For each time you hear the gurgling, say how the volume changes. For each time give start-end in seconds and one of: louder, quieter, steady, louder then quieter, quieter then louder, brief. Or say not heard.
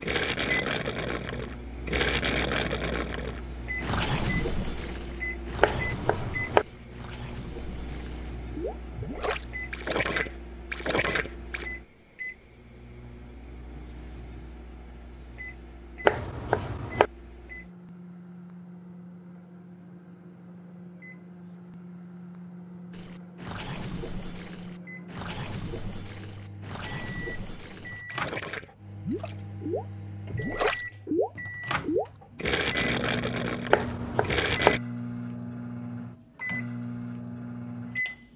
0.0-11.7 quieter then louder
22.9-34.8 louder.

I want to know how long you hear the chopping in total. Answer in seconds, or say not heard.
3 s.